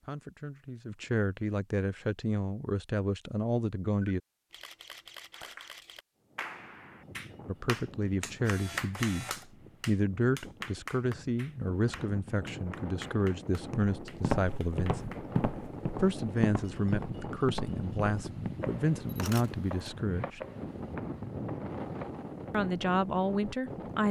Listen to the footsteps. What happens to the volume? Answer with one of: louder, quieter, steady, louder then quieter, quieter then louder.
quieter.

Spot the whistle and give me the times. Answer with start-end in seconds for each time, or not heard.
not heard.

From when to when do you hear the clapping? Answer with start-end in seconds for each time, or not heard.
5.3-15.4.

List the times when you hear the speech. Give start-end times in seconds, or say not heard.
0.0-4.2, 7.5-15.1, 16.0-20.4, 22.5-24.0.